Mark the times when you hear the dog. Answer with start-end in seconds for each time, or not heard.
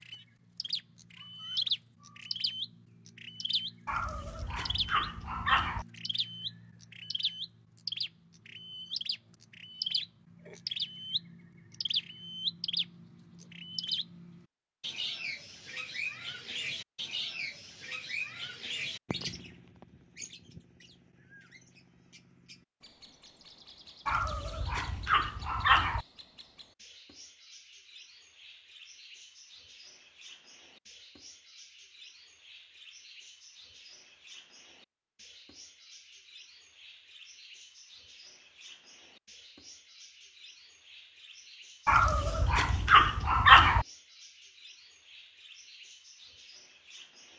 3.9-5.8, 24.1-26.1, 41.9-43.9.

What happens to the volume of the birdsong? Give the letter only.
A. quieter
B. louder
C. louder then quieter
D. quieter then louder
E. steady
A.